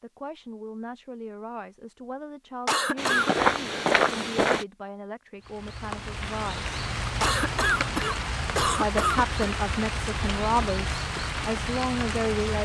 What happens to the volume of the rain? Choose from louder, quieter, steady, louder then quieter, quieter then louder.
steady.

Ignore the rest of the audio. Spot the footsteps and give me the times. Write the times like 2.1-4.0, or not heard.
3.0-4.7.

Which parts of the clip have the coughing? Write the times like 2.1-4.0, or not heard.
2.6-3.3, 7.2-9.5.